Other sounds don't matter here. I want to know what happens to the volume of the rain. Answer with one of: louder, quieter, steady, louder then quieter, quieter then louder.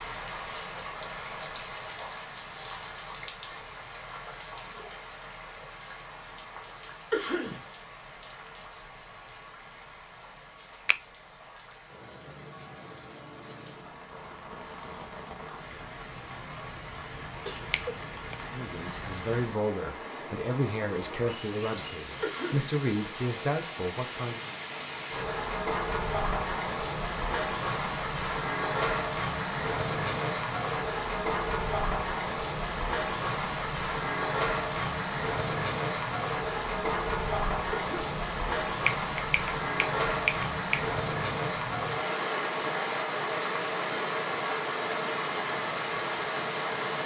louder.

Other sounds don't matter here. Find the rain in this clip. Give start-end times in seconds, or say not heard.
0.0-47.0.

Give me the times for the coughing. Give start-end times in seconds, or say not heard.
7.1-7.7, 22.2-22.8, 37.7-38.2.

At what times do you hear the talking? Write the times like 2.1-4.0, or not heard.
18.5-24.5.